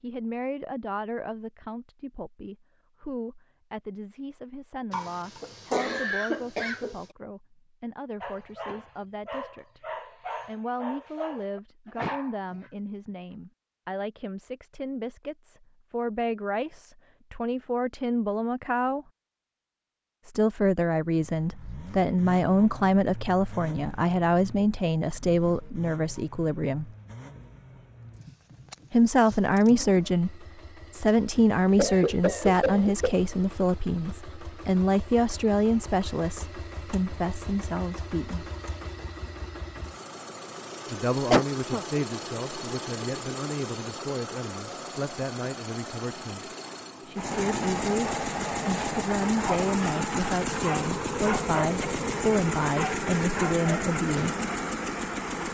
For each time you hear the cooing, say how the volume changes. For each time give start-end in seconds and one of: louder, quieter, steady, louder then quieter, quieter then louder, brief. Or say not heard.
not heard.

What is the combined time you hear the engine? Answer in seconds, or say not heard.
34 s.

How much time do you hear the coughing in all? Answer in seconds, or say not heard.
4 s.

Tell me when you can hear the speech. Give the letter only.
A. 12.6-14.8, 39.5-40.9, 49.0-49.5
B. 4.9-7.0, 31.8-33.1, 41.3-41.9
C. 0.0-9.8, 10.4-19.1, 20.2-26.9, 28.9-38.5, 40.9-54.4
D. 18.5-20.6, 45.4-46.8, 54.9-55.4
C.